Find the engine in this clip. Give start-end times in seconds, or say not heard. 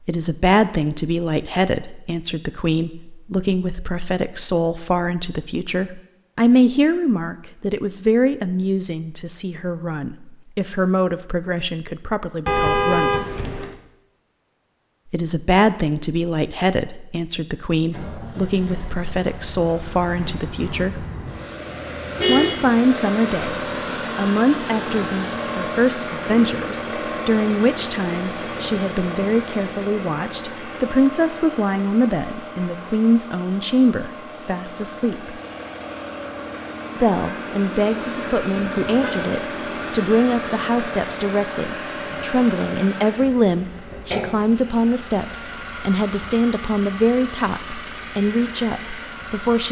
17.7-49.6.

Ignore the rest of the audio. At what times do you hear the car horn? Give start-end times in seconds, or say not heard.
12.4-13.8, 22.1-22.7, 38.8-39.2.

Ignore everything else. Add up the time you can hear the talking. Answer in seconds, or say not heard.
45 s.